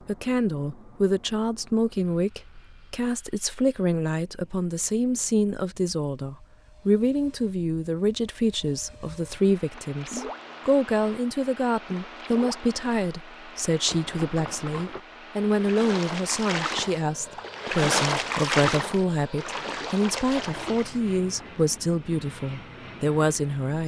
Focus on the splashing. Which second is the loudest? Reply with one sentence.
The loudest moment of the splashing is at 18 seconds.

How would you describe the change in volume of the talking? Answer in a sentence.
The loudness of the talking stays about the same.